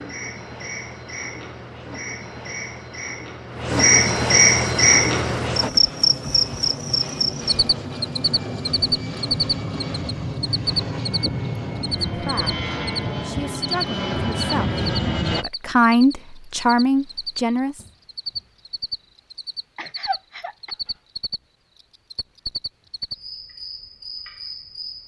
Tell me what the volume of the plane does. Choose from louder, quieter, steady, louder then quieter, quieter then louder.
louder.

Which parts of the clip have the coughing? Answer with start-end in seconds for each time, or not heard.
19.8-20.8.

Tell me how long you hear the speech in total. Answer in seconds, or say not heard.
6 s.